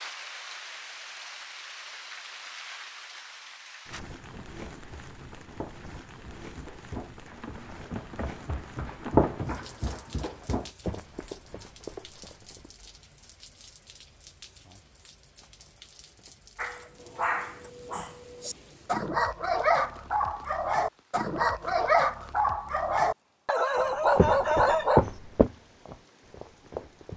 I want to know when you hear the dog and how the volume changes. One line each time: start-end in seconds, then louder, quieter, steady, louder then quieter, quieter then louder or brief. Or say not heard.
16.6-25.1 louder.